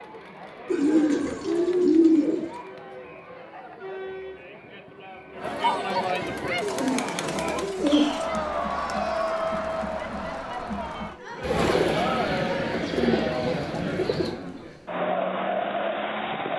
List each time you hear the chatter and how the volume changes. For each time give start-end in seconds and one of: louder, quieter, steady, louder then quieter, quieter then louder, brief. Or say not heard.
0.0-16.5 louder.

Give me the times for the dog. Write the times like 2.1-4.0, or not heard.
not heard.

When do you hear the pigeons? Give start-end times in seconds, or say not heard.
0.7-2.5, 6.6-8.2, 11.4-14.3.